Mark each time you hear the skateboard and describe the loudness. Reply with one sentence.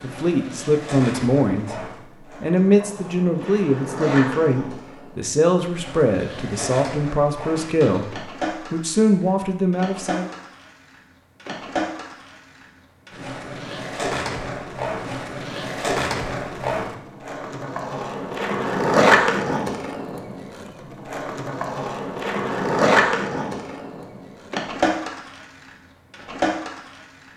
You can hear the skateboard from 0.0 to 27.3 s, getting louder.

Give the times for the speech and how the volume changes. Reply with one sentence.
The speech can be heard briefly from 0.0 to 1.8 s; and from 2.4 to 10.3 s, at a steady volume.